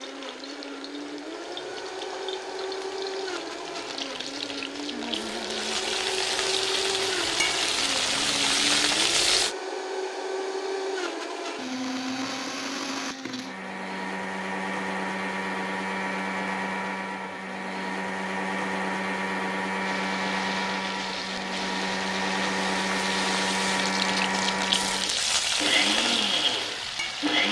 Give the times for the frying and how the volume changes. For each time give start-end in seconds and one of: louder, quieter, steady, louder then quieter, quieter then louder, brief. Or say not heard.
0.0-9.6 louder
19.8-27.4 louder.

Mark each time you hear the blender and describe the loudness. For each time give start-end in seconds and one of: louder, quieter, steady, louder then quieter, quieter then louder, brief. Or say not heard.
0.0-27.4 louder.